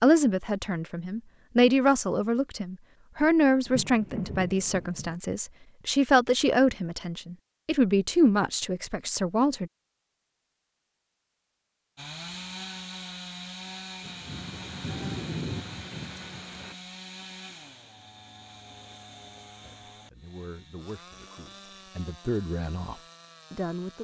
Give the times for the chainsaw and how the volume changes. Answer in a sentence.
The chainsaw can be heard from 11.9 to 24.0 s, getting quieter.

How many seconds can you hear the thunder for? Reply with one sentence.
The thunder can be heard for 4 seconds in total.